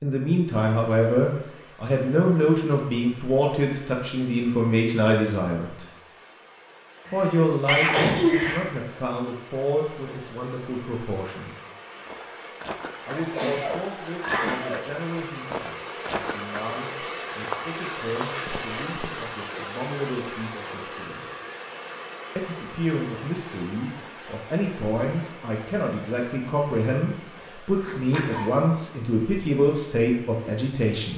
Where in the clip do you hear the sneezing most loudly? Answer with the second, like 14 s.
8 s.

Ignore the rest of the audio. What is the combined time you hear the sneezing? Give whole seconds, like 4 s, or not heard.
4 s.